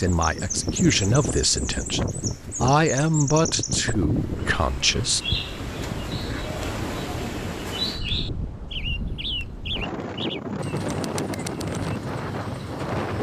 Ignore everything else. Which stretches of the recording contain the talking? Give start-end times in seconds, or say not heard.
0.0-5.2.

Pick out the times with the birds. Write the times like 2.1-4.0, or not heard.
0.1-13.1.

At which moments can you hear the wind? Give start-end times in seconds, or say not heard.
0.0-13.1.